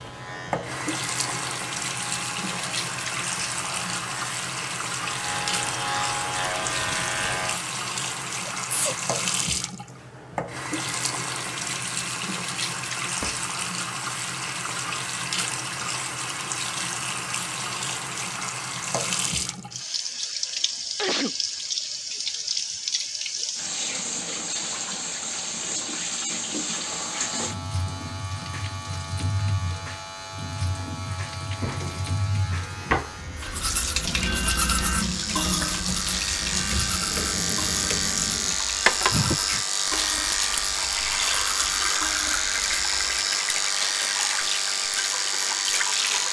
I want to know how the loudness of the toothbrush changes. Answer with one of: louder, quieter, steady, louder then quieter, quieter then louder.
quieter.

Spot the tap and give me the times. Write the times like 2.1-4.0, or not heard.
0.0-46.2.